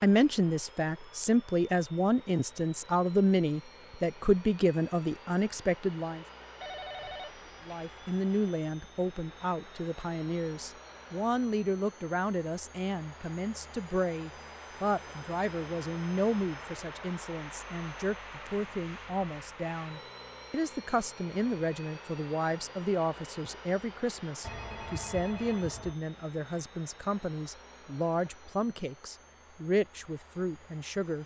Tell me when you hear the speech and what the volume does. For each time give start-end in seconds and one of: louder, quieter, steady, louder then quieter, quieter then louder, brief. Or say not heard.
0.0-6.2 steady
7.7-31.2 steady.